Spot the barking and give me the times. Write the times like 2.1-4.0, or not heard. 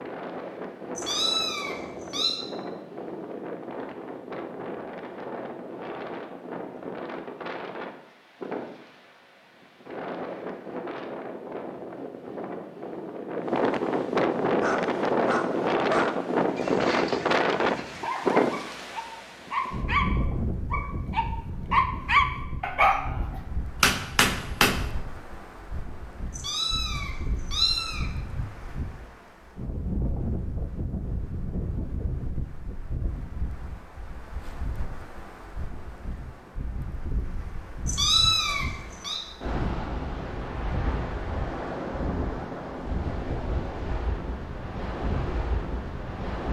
14.6-23.4.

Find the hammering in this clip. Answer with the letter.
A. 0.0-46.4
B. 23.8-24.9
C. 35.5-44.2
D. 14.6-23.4
B.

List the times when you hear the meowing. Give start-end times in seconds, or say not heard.
0.9-2.4, 26.3-28.1, 37.9-39.2.